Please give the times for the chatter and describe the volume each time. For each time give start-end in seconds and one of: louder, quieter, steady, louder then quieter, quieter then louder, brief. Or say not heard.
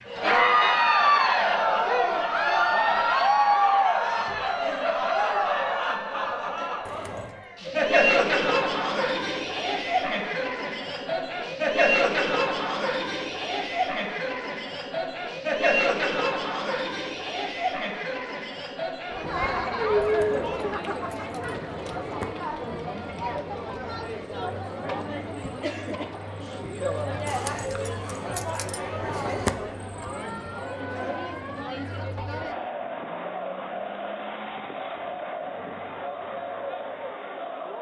0.1-37.7 quieter.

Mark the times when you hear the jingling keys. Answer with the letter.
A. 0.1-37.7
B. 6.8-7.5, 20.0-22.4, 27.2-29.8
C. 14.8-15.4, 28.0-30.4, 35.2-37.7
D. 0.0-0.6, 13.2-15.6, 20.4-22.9
B.